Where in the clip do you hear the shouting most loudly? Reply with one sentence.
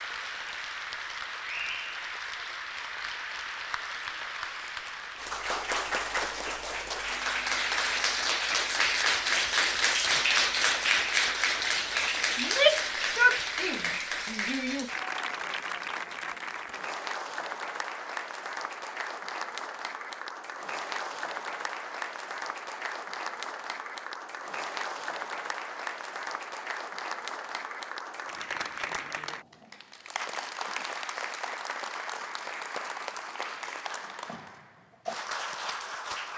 The loudest moment of the shouting is at 13 seconds.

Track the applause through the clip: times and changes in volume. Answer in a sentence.
The applause can be heard from 0.0 to 36.3 s, getting louder then quieter.